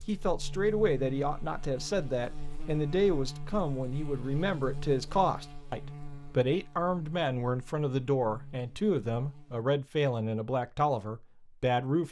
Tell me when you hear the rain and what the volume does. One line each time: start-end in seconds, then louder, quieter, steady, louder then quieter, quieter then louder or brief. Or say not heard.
not heard.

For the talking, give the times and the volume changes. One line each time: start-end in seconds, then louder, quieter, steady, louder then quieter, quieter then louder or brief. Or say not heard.
0.1-12.0 steady.